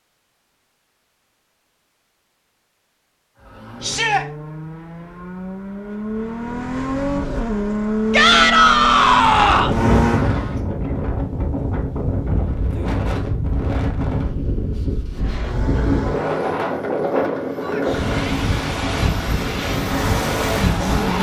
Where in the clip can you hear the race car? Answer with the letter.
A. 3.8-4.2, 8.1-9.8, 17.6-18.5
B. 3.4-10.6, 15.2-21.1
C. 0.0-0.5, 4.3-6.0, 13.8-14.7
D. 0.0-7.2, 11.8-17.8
B.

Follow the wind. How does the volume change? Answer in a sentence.
The volume of the wind stays about the same.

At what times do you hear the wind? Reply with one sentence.
You can hear the wind from 9.2 to 21.1 s.